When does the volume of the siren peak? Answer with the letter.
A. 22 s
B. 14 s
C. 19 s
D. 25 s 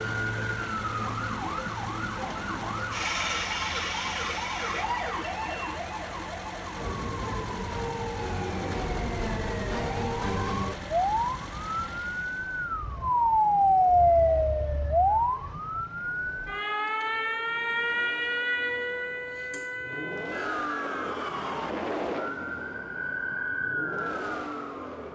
B.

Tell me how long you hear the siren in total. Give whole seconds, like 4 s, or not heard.
25 s.